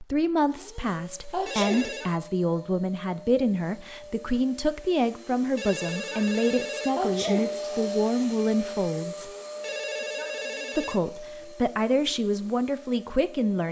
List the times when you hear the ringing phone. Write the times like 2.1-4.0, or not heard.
1.4-2.2, 5.5-7.6, 9.6-11.0.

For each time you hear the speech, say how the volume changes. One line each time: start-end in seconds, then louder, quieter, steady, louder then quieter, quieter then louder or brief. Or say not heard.
0.0-9.3 steady
10.8-13.6 brief.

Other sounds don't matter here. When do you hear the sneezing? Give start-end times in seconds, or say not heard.
1.3-2.0, 7.0-7.7.